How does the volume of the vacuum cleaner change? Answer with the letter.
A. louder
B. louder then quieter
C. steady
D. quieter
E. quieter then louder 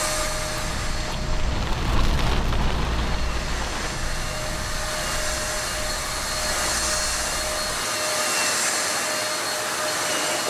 A.